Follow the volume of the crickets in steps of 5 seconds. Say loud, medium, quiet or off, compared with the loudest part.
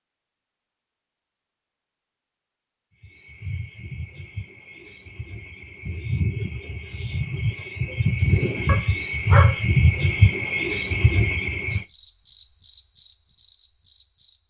quiet, loud, loud.